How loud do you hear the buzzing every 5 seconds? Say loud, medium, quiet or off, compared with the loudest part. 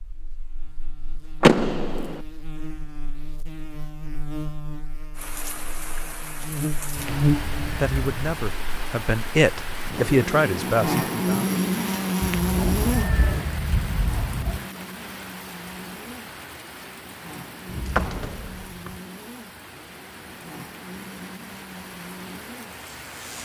quiet, loud, loud, quiet, quiet.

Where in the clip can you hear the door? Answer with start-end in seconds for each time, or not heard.
1.4-2.2, 17.6-18.9.